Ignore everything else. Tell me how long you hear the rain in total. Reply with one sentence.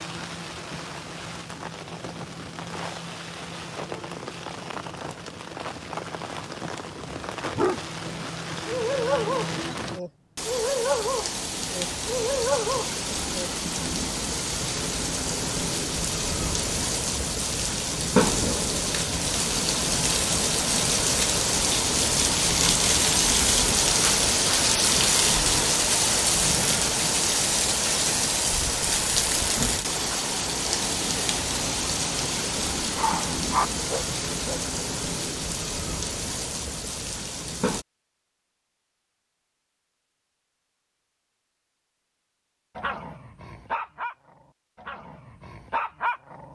You can hear the rain for 38 seconds altogether.